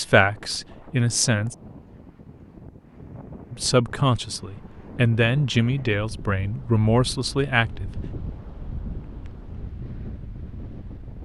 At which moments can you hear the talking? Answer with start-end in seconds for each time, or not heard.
0.0-1.6, 3.5-7.9.